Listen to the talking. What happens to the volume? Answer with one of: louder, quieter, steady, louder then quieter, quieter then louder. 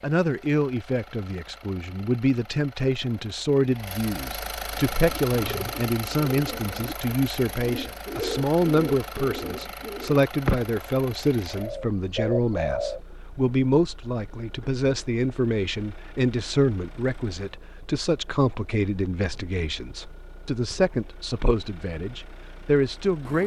steady.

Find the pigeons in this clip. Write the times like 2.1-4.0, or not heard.
4.7-10.7, 11.4-13.0.